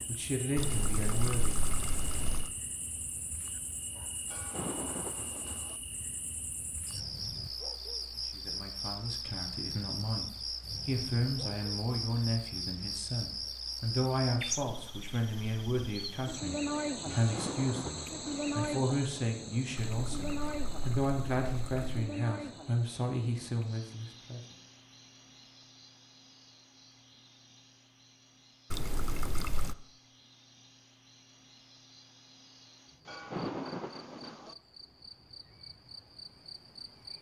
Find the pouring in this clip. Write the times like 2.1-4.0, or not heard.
0.6-2.5, 19.8-22.1, 28.7-29.8.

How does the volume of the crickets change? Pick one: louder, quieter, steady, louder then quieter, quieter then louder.
louder then quieter.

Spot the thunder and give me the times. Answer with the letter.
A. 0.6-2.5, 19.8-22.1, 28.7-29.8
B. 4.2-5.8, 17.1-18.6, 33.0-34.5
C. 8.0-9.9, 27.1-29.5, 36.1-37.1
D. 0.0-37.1
B.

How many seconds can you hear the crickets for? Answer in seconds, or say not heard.
37 s.